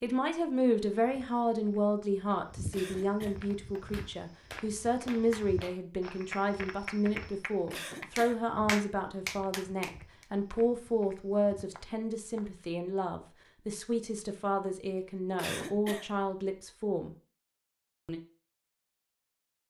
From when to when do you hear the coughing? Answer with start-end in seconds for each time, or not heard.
2.7-3.4, 7.7-8.4, 15.3-16.1.